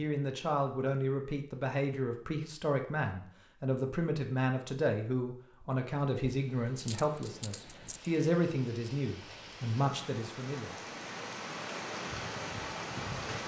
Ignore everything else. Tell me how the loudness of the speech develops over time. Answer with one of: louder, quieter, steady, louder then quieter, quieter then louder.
steady.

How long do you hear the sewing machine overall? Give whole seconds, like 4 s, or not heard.
not heard.